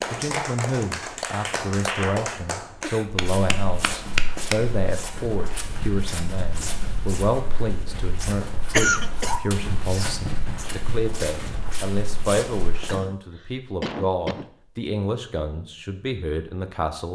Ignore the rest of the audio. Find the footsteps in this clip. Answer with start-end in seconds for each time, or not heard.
3.0-12.9.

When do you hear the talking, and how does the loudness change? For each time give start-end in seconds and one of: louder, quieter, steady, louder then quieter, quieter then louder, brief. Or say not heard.
0.1-17.1 steady.